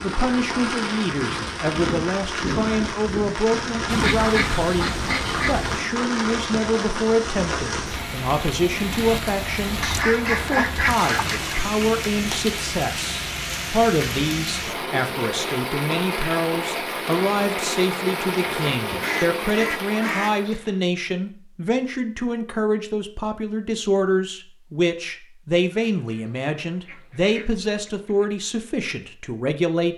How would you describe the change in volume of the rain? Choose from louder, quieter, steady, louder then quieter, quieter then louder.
steady.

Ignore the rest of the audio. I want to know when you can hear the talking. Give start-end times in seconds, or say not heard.
0.0-29.9.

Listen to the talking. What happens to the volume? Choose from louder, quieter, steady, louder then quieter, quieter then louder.
steady.